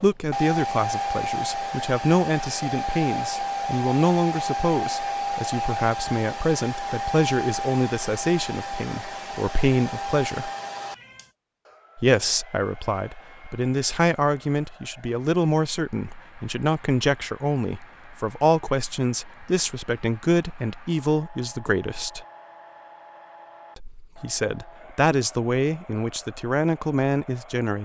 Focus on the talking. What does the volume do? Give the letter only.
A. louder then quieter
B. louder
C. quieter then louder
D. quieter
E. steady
E.